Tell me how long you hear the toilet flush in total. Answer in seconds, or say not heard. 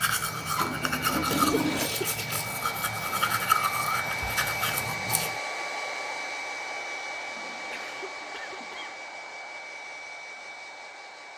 3 s.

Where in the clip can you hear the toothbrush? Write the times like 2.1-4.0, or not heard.
0.0-5.4.